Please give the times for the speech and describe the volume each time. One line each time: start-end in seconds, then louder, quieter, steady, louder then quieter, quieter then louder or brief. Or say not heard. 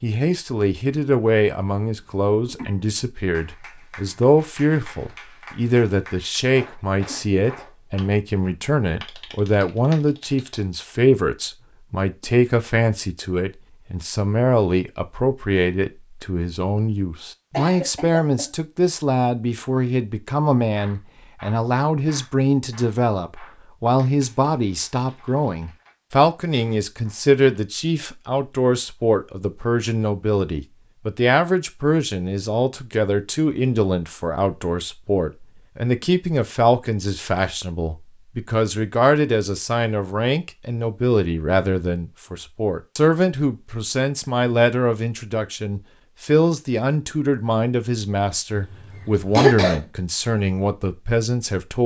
0.0-51.8 steady.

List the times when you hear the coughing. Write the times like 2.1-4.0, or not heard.
2.0-2.8, 17.5-18.5, 48.5-49.9.